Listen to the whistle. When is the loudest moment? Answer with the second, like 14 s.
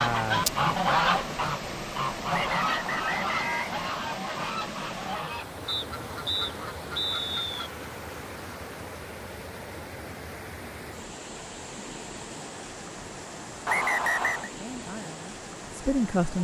14 s.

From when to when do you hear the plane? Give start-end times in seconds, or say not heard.
not heard.